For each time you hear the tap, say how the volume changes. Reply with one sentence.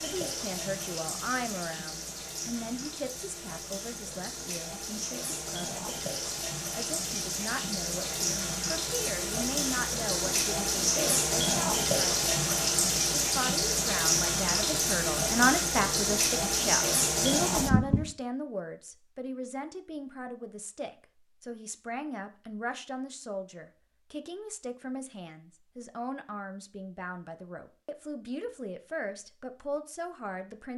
The tap can be heard from 0.0 to 18.1 s, getting louder.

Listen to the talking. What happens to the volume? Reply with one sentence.
The loudness of the talking goes up, then down.